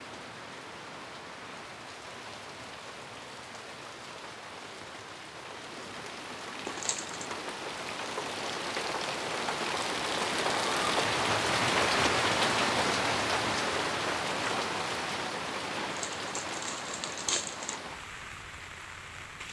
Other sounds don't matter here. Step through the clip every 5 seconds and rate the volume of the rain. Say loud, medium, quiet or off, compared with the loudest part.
quiet, medium, loud, medium.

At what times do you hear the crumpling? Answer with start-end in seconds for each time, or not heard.
6.7-7.2, 16.1-17.8.